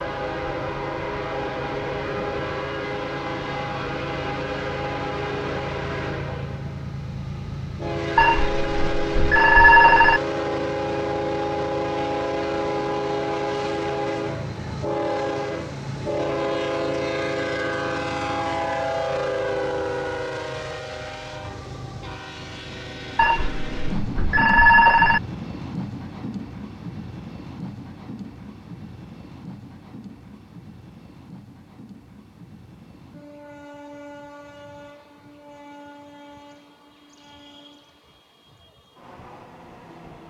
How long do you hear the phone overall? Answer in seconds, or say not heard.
4 s.